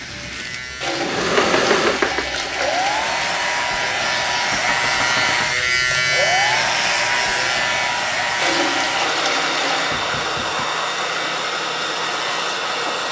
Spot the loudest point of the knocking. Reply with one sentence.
The volume of the knocking peaks at 2 seconds.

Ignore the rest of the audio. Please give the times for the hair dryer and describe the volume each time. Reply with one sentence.
The hair dryer can be heard from 0.0 to 13.0 s, at a steady volume.